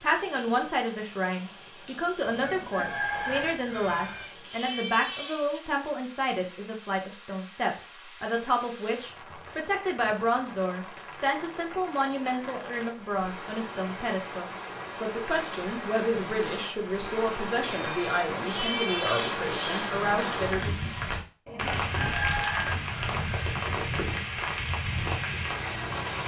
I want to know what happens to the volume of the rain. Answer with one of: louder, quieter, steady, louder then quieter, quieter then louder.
louder.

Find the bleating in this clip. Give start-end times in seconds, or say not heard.
3.7-5.6, 17.7-19.9.